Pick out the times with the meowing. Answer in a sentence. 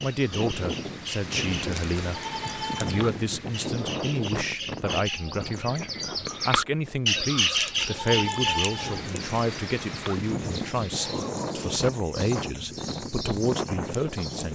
You can't hear the meowing here.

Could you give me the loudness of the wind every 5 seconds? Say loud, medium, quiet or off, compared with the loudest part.
loud, medium, loud.